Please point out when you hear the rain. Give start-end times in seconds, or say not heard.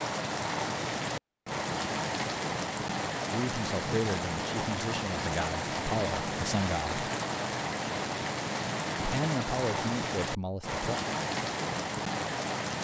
0.0-12.7.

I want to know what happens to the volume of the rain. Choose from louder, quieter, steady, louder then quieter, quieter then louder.
steady.